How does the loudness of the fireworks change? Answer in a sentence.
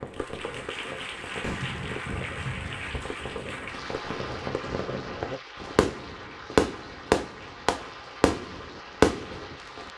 The loudness of the fireworks goes up.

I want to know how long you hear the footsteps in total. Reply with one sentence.
The footsteps can't be heard in this clip.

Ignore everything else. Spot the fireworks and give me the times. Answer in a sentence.
The fireworks can be heard from 0.0 to 9.9 s.